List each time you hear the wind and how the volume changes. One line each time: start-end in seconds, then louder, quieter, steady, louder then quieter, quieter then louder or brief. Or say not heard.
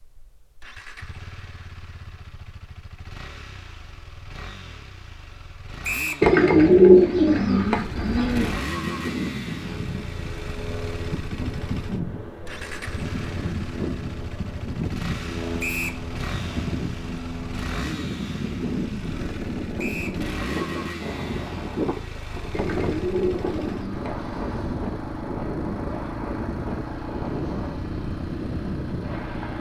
8.6-29.5 steady.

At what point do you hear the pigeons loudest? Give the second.
7 s.